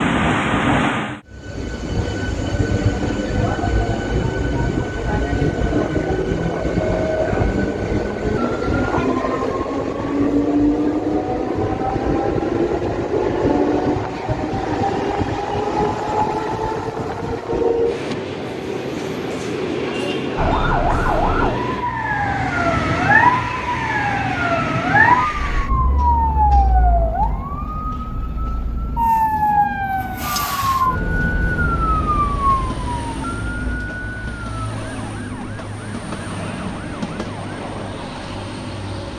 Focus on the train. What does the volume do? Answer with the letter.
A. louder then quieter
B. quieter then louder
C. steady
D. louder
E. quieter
E.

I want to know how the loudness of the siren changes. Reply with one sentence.
The loudness of the siren goes down.